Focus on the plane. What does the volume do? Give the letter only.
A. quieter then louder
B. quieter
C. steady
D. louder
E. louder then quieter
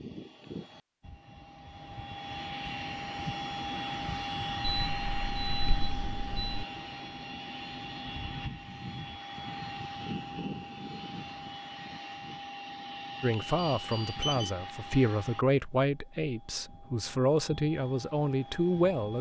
B.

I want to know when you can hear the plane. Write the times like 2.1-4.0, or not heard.
0.0-19.1.